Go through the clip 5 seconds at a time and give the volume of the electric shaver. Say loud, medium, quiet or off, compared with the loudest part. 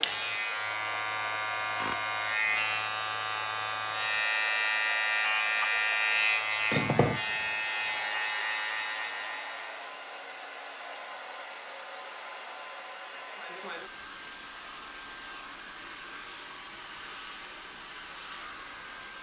loud, loud, off, off.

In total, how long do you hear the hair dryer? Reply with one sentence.
The hair dryer can be heard for 19 seconds in total.